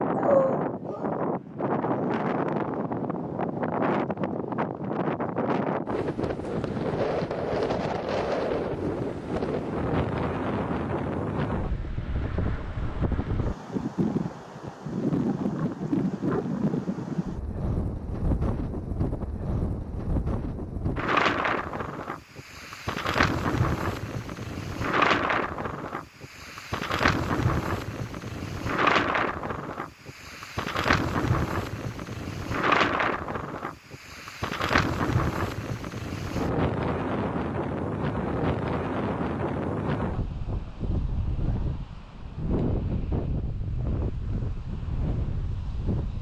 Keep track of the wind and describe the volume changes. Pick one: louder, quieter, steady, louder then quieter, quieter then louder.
steady.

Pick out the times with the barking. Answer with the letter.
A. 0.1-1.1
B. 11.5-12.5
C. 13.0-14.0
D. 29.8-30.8
A.